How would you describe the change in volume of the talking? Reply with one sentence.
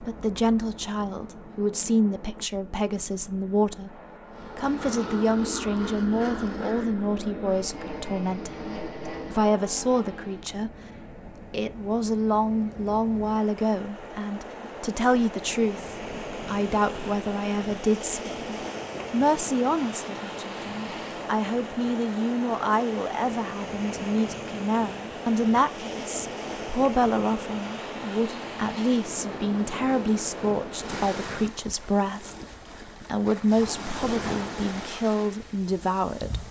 The loudness of the talking stays about the same.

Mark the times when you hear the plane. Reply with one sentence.
The plane can be heard from 4.2 to 10.6 s.